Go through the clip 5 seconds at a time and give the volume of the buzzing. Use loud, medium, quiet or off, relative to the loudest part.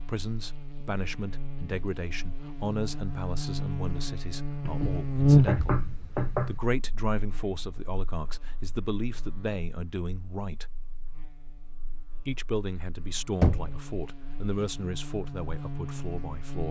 medium, loud, quiet, medium.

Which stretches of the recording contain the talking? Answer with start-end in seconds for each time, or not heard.
0.0-5.8, 6.5-10.7, 12.2-16.6.